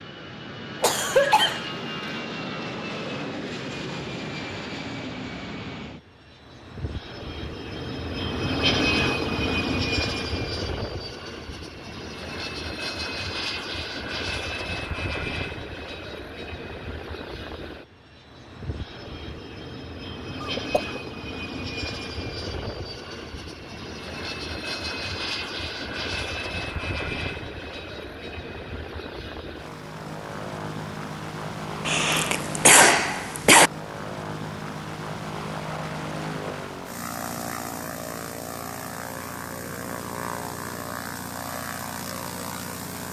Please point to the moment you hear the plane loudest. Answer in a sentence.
The loudest moment of the plane is at 9 seconds.